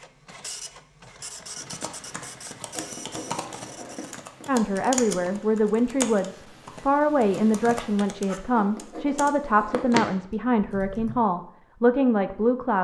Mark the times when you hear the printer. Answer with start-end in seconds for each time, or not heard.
0.0-4.2.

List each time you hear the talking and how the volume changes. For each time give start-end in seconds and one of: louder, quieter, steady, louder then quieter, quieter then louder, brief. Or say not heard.
4.5-12.7 steady.